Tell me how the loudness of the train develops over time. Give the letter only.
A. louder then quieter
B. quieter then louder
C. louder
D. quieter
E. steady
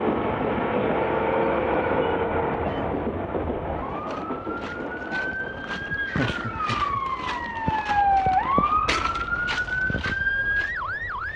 D.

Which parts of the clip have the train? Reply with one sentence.
The train can be heard from 0.0 to 11.3 s.